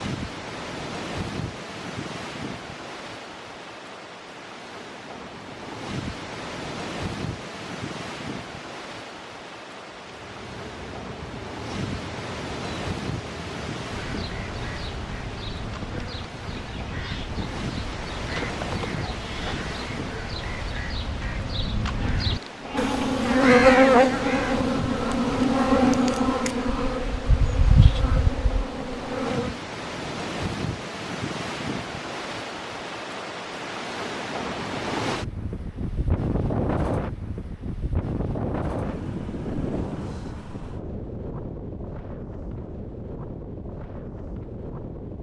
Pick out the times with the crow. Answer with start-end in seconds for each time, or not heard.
14.0-24.6.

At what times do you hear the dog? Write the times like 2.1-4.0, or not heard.
not heard.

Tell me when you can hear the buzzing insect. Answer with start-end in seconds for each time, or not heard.
9.9-29.6.